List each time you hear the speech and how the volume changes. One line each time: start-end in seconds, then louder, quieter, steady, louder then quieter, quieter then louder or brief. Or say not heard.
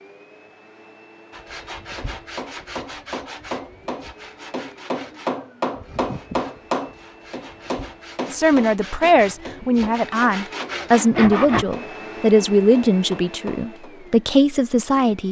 8.3-15.2 steady.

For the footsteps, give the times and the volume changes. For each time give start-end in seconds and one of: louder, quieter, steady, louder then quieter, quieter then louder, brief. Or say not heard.
not heard.